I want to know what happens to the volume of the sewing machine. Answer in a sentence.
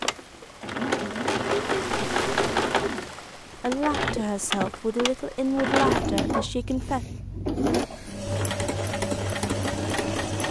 The loudness of the sewing machine stays about the same.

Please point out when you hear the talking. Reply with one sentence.
You can hear the talking from 3.5 to 7.0 s.